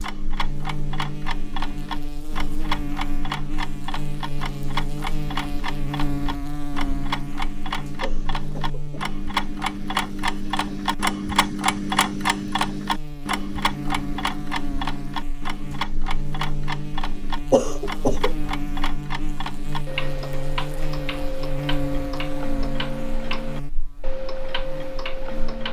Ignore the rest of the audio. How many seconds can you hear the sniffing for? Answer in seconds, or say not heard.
2 s.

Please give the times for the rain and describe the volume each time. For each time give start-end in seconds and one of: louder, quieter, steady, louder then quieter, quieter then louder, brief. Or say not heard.
not heard.